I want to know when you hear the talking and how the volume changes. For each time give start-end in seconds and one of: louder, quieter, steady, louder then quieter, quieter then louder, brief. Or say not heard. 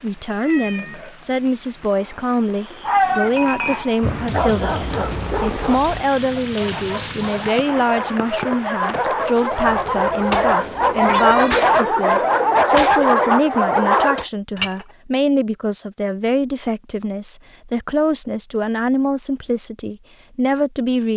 0.0-21.1 steady.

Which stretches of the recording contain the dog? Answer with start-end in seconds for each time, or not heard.
2.8-14.2.